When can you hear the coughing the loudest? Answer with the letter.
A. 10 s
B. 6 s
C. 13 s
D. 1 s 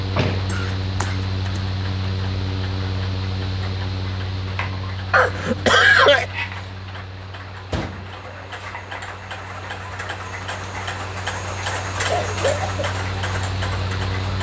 B.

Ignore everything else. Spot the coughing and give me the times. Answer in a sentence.
The coughing can be heard from 0.5 to 1.6 s, from 5.1 to 6.2 s and from 11.9 to 12.9 s.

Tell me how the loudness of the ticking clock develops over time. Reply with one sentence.
The loudness of the ticking clock goes up.